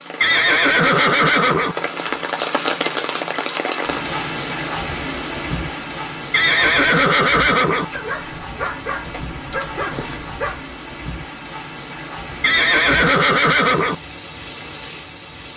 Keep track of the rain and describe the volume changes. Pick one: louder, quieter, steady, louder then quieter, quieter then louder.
quieter.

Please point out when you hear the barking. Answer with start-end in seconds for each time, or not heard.
7.9-10.7.